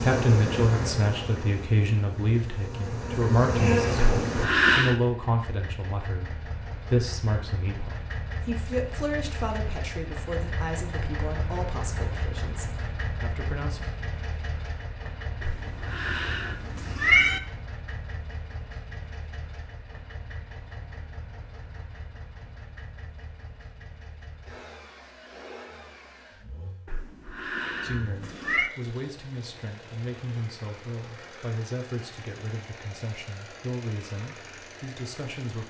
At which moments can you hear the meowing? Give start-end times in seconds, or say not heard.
4.0-5.0, 15.4-17.4, 26.9-28.7.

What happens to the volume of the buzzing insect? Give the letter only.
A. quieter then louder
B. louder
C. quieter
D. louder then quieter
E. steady
A.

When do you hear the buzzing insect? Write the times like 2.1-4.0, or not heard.
0.0-4.5.